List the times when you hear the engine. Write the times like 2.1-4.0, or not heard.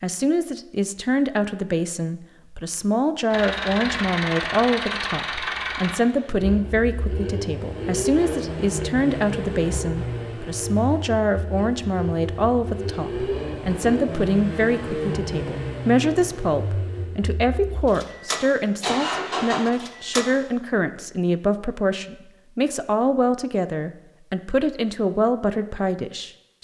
3.3-20.4.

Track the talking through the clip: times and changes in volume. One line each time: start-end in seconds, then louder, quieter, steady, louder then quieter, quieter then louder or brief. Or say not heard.
0.0-26.5 steady.